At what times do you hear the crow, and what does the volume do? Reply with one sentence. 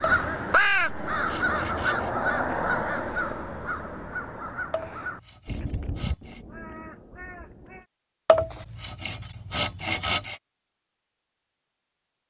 The crow can be heard from 0.0 to 7.8 s, getting quieter.